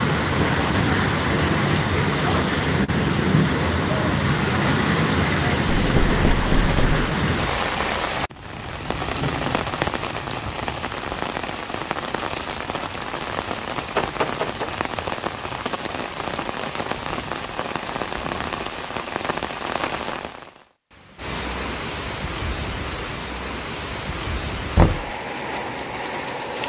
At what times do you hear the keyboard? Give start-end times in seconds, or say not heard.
not heard.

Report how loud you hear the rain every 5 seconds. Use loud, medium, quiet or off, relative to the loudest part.
loud, loud, medium, medium, medium, medium.